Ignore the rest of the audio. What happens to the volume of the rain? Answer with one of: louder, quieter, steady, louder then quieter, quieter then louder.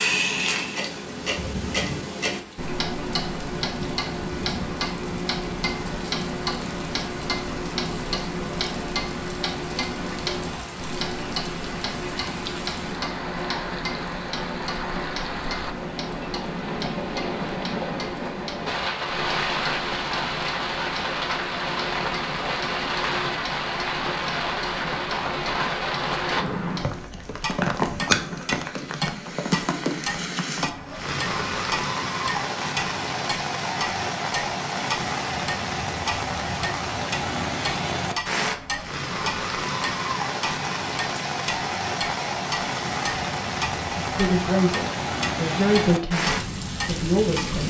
louder.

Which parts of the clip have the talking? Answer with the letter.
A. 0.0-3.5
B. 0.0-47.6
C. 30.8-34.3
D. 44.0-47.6
D.